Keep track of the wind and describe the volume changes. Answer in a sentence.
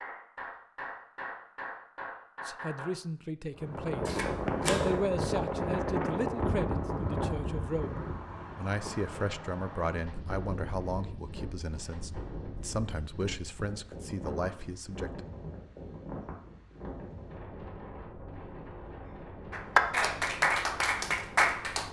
The volume of the wind goes down.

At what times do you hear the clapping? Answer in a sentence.
The clapping can be heard from 0.0 to 2.9 s and from 19.5 to 21.8 s.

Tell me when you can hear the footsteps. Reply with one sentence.
The footsteps can't be heard in this clip.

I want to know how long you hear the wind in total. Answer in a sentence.
The wind can be heard for 18 seconds in total.